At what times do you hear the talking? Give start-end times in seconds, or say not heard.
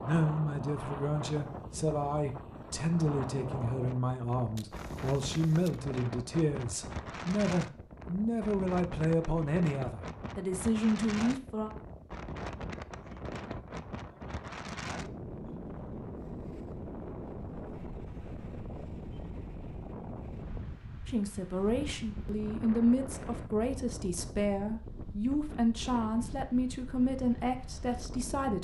0.0-11.7, 21.1-28.5.